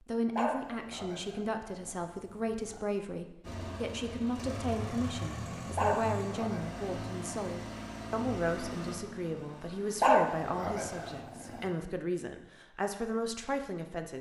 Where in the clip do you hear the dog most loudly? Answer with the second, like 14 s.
10 s.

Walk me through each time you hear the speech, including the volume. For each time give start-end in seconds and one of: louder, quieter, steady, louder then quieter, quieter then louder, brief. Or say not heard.
0.0-14.1 steady.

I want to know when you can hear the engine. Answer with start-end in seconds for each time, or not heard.
3.4-11.2.